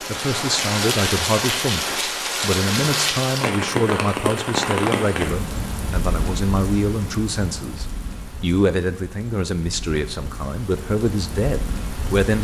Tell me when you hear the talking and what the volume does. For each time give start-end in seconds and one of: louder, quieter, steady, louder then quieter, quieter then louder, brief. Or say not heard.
0.0-12.3 steady.